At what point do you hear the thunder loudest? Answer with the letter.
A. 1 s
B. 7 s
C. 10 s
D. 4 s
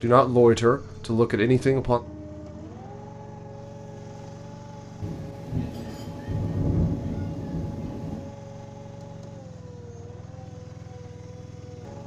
B.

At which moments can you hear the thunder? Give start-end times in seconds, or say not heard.
5.0-8.3.